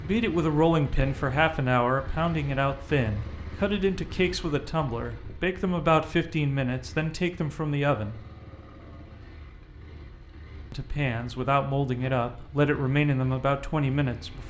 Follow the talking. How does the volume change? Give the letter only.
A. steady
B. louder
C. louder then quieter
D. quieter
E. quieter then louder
A.